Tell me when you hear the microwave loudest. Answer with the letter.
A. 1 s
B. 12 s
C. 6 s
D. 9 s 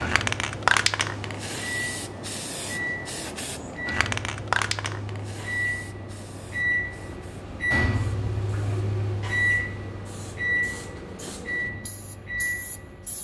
D.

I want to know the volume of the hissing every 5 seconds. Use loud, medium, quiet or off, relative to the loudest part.
loud, quiet, quiet.